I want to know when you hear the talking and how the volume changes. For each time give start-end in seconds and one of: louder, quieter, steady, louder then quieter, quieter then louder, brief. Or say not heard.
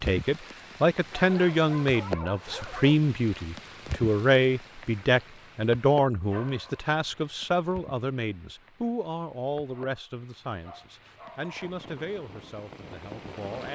0.0-13.6 quieter.